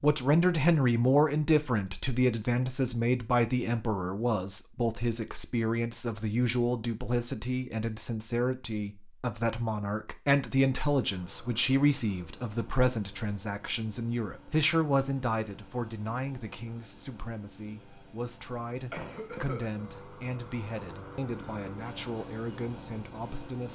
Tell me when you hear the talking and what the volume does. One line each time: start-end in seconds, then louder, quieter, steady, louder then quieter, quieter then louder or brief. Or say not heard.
0.0-23.6 quieter.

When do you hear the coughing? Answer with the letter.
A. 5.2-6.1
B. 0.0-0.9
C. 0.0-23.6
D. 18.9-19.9
D.